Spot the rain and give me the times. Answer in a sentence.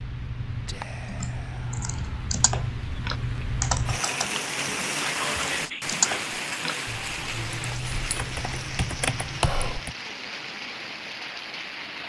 The rain can be heard from 0.0 to 12.0 s.